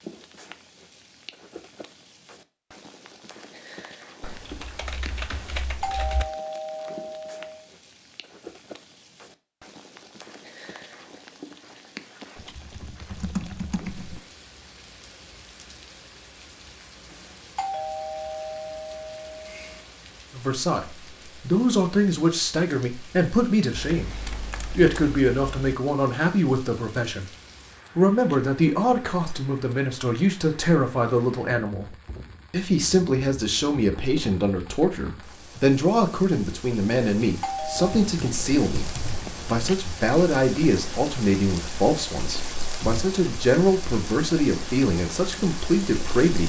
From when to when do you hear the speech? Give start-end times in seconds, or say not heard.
20.3-24.1, 24.8-27.2, 27.9-46.4.